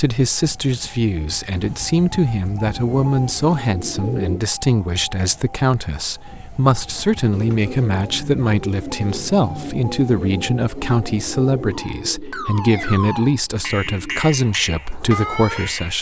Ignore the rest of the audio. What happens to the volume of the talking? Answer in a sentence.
The loudness of the talking stays about the same.